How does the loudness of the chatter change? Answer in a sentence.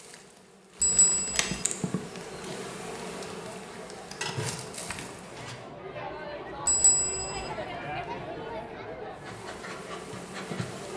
The volume of the chatter goes up, then down.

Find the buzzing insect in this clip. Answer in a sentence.
You can hear the buzzing insect from 0.0 to 5.7 s and from 9.1 to 10.9 s.